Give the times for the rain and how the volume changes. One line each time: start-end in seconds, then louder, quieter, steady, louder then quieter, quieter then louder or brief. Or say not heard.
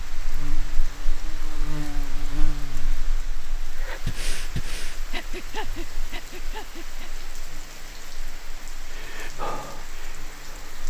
0.0-10.8 steady.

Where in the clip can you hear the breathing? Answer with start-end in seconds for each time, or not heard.
3.8-7.2, 8.8-10.8.